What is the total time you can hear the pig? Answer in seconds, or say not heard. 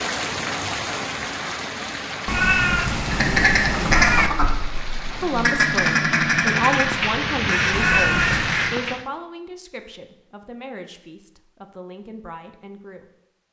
not heard.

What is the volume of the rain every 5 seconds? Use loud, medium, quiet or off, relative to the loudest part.
loud, loud, off.